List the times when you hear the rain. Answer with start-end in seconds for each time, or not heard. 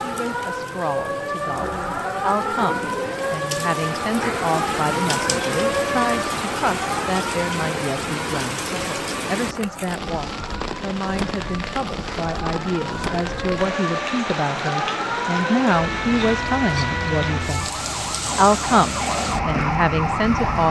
0.0-20.6.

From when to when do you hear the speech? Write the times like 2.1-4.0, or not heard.
0.0-20.6.